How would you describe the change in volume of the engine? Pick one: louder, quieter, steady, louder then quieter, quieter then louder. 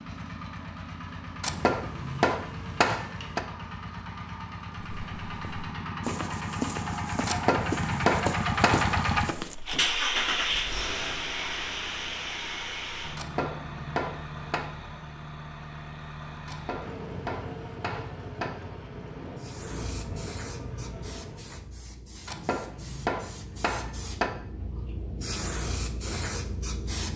louder then quieter.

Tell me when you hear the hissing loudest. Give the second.
26 s.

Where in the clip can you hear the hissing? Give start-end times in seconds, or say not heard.
19.4-27.1.